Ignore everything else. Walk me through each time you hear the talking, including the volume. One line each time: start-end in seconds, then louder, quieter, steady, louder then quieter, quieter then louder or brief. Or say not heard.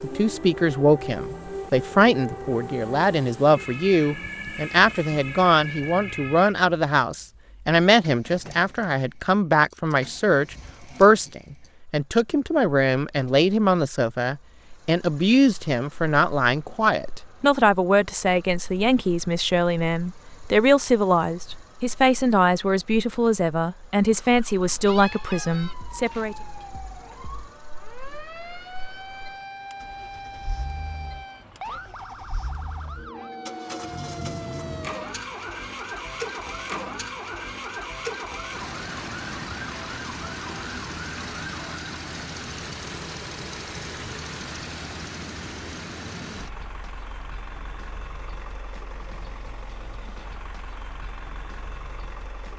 0.0-26.4 steady.